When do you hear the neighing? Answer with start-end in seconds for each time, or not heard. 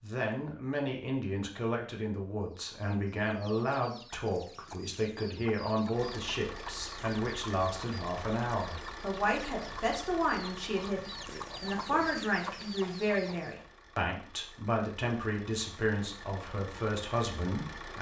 not heard.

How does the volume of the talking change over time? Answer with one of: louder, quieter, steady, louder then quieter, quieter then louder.
steady.